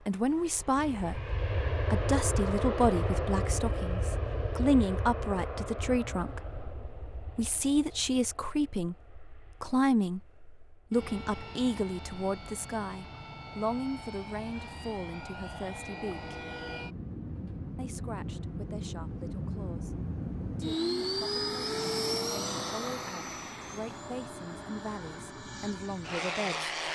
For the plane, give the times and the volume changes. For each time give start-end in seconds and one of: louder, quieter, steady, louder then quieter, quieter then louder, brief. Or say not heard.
0.1-26.9 quieter then louder.